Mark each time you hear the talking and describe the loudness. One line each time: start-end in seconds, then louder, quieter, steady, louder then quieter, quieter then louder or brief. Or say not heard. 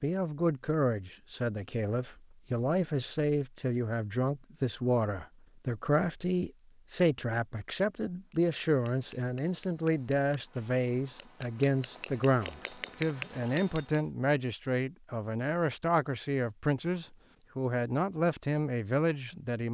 0.0-19.6 steady.